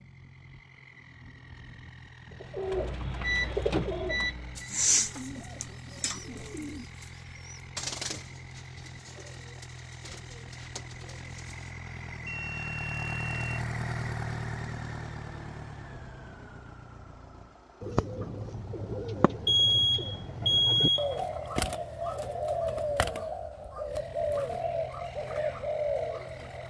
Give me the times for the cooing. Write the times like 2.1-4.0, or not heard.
2.4-11.8, 17.8-26.6.